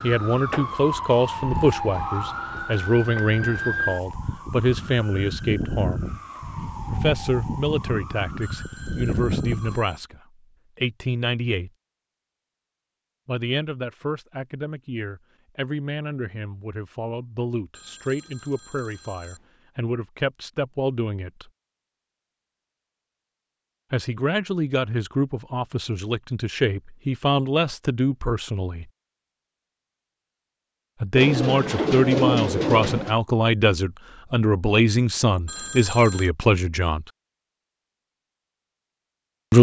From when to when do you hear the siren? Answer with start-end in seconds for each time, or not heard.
0.0-9.8.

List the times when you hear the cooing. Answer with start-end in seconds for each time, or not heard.
31.1-33.1.